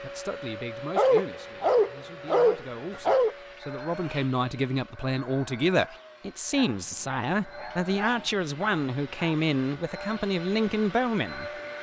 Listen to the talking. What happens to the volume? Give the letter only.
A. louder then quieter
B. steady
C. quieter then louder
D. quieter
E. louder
E.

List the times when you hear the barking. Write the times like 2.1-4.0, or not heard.
0.9-3.4, 6.5-9.3.